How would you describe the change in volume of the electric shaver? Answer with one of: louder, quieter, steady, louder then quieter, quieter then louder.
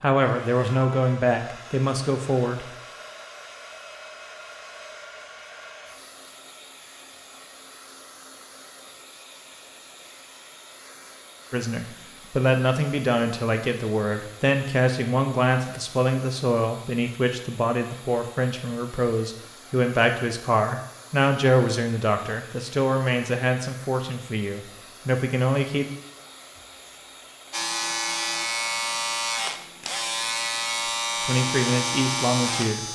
steady.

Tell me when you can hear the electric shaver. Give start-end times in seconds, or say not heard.
27.5-32.9.